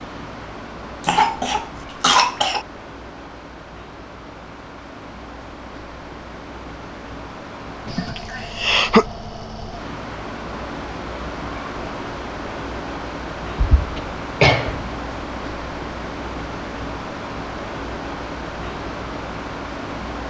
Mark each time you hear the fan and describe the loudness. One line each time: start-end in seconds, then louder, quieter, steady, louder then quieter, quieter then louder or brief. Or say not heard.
0.0-20.2 louder.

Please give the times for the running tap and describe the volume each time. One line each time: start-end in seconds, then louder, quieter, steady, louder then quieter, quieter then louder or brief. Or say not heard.
not heard.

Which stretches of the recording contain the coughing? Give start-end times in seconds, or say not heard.
1.0-2.6, 7.8-9.1, 13.6-14.9.